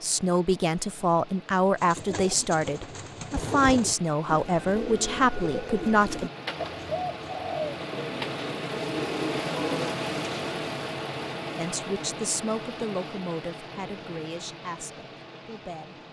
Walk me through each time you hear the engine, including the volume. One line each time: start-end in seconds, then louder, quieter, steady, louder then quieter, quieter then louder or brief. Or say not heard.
0.0-16.0 louder then quieter.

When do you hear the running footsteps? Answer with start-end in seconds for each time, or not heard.
not heard.